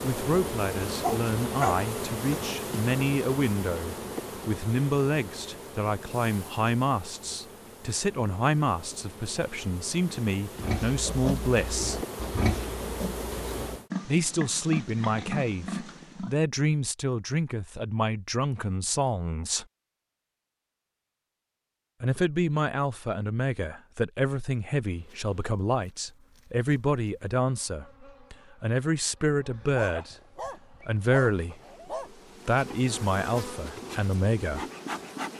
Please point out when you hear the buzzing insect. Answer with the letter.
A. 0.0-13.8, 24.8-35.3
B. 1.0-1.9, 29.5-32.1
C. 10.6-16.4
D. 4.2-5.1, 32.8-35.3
A.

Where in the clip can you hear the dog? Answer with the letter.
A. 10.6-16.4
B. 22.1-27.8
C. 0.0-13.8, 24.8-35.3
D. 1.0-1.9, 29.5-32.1
D.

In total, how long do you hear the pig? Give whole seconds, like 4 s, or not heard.
6 s.